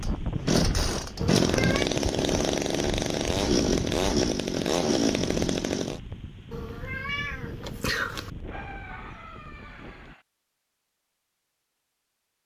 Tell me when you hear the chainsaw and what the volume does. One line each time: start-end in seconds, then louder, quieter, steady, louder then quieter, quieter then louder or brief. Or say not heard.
0.0-6.0 steady.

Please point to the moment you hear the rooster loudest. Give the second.
9 s.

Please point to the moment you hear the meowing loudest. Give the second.
8 s.